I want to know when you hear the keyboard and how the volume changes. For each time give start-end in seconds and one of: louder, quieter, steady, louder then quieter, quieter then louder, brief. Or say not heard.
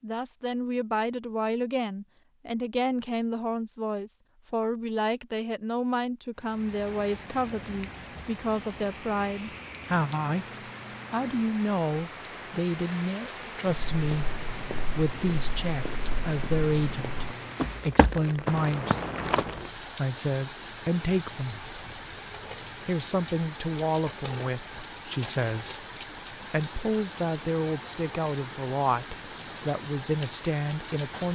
not heard.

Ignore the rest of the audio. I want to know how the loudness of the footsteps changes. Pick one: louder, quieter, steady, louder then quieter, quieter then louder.
louder.